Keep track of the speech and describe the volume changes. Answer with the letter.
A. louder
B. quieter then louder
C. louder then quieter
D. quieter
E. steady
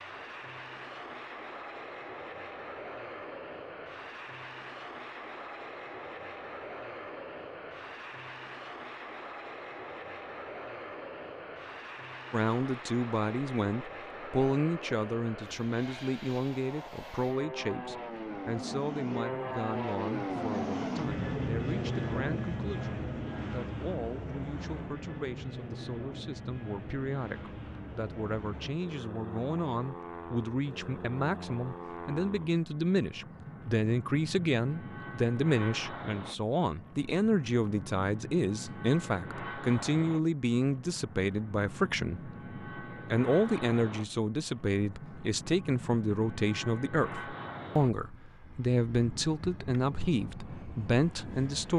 B.